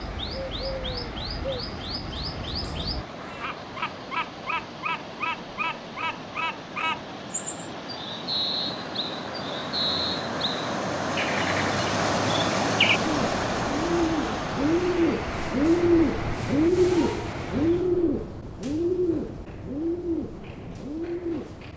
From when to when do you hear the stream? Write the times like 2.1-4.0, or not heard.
0.0-17.9.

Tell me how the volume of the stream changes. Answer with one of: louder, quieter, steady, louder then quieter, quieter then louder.
louder then quieter.